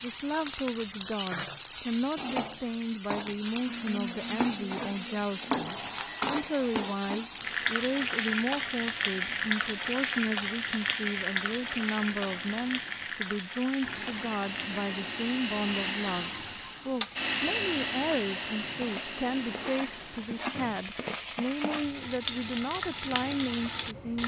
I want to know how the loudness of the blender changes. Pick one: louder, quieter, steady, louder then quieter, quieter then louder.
quieter then louder.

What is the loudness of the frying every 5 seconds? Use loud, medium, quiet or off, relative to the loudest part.
loud, loud, loud, medium, loud.